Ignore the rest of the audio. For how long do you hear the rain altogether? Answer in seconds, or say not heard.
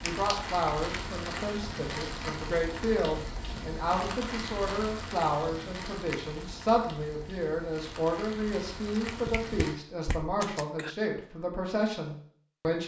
10 s.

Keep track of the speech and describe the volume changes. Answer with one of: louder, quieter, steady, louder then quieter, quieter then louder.
steady.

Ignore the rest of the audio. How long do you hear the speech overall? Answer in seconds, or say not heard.
13 s.